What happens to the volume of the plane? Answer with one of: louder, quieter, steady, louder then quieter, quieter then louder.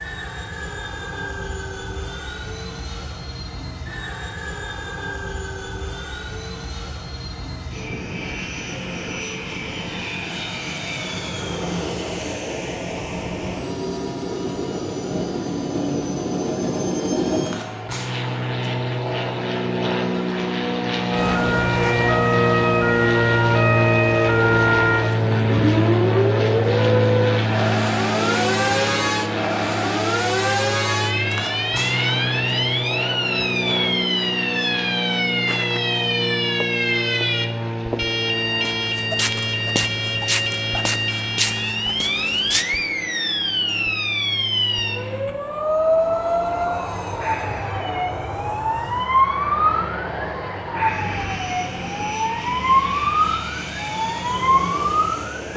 louder then quieter.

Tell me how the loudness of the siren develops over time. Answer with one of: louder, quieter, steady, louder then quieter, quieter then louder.
steady.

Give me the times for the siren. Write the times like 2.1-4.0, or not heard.
21.1-55.5.